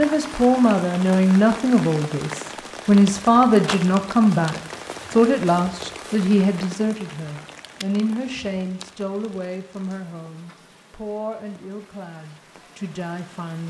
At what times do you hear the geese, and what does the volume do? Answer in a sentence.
You can't hear the geese here.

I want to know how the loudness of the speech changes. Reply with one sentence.
The volume of the speech goes down.